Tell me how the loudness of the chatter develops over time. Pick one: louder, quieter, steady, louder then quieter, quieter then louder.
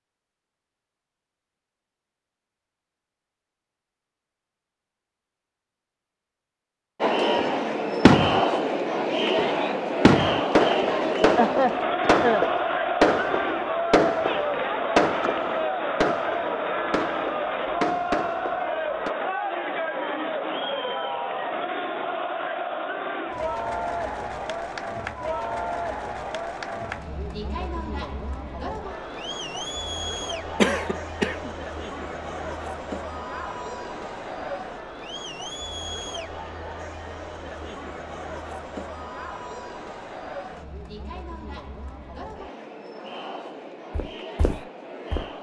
quieter.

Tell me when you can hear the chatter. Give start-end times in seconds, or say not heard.
7.0-45.3.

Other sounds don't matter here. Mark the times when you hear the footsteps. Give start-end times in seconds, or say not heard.
43.9-45.3.